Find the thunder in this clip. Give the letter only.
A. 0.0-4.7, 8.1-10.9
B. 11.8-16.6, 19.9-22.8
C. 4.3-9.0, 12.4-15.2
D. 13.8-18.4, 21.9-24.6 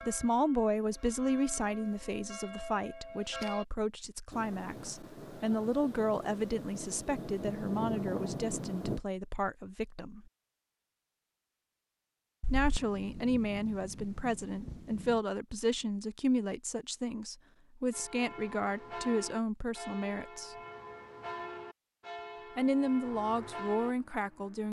C.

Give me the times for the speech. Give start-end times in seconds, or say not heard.
0.0-10.2, 12.5-20.6, 22.6-24.6.